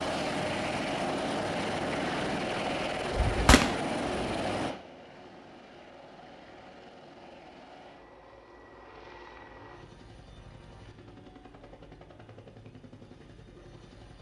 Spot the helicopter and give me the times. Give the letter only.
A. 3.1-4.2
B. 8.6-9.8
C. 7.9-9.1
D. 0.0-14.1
D.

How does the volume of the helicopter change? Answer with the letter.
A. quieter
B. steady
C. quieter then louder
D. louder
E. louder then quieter
A.